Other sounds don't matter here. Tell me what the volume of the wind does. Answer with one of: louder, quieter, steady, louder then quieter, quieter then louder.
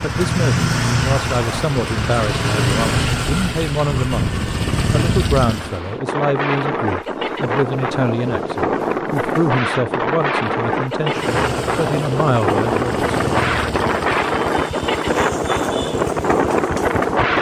louder.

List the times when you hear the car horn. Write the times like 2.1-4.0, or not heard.
not heard.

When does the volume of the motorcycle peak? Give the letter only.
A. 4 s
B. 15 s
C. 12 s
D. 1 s
D.